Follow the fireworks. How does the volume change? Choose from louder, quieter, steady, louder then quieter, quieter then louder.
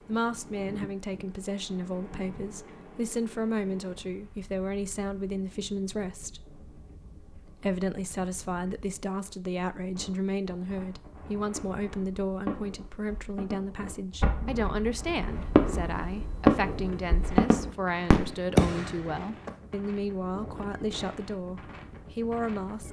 louder.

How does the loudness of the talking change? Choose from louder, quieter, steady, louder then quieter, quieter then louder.
steady.